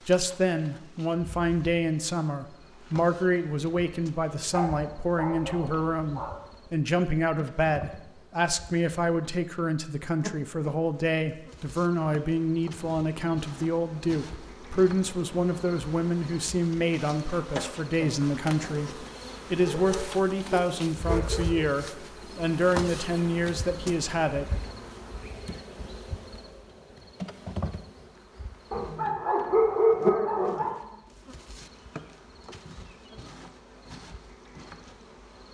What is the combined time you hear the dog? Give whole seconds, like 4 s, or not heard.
6 s.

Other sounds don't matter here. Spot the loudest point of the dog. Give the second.
30 s.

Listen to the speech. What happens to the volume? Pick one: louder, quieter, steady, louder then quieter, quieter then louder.
steady.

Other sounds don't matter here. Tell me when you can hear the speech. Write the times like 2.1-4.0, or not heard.
0.1-24.6.